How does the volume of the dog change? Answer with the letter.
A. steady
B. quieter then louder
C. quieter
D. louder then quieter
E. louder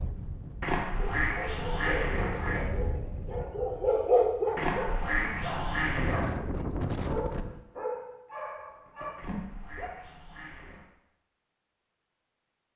D.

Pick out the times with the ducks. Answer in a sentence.
You can hear the ducks from 0.6 to 2.6 s, from 4.5 to 6.3 s and from 9.2 to 10.9 s.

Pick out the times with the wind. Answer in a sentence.
The wind can be heard from 0.0 to 7.6 s.